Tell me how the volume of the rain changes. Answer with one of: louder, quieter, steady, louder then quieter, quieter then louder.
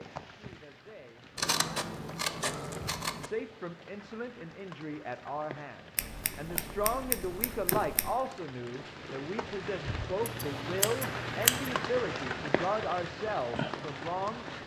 louder.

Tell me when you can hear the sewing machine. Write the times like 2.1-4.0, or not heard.
not heard.